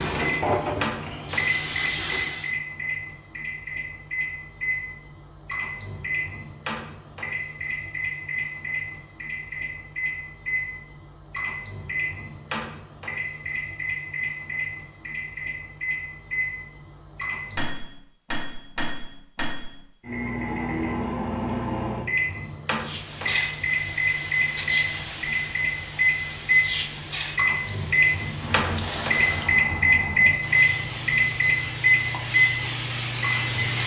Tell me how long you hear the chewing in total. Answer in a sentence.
You can't hear the chewing here.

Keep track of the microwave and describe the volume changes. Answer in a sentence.
The volume of the microwave goes up.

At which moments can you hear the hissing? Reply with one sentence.
You can hear the hissing from 0.0 to 2.5 s and from 22.8 to 33.8 s.